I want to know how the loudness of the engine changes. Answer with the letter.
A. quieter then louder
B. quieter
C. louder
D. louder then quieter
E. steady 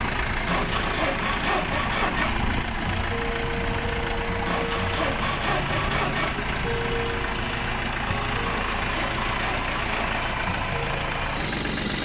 E.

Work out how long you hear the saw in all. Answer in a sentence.
The saw can be heard for 6 seconds in total.